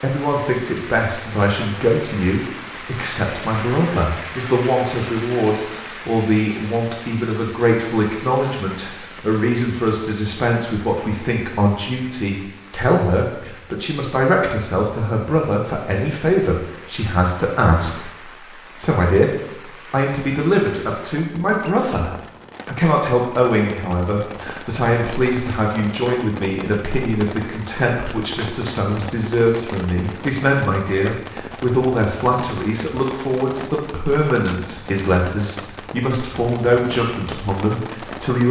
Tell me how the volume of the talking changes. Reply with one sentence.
The loudness of the talking stays about the same.